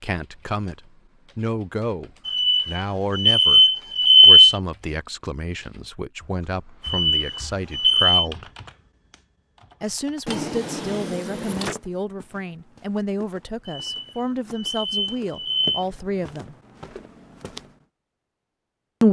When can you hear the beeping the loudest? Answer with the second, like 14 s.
4 s.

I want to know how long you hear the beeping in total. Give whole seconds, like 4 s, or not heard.
6 s.